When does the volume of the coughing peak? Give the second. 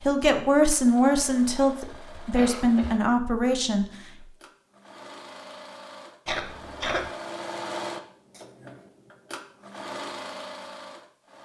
7 s.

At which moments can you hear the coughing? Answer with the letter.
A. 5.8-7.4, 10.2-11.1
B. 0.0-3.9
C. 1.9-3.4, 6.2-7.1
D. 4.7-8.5
C.